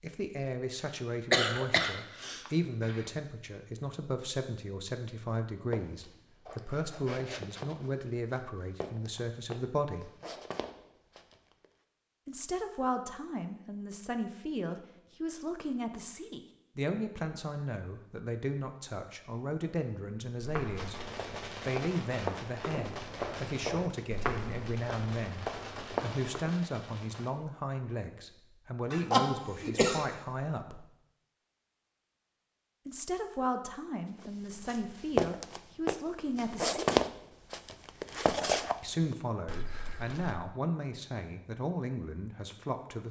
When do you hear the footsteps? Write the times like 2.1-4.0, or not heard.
5.7-11.7, 20.4-26.6, 34.2-40.5.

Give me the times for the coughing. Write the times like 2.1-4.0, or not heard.
1.3-3.0, 28.9-30.1.